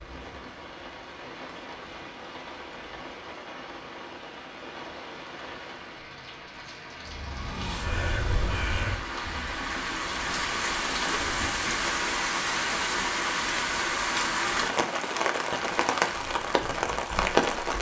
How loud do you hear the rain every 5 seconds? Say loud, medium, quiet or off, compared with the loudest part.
quiet, medium, loud, loud.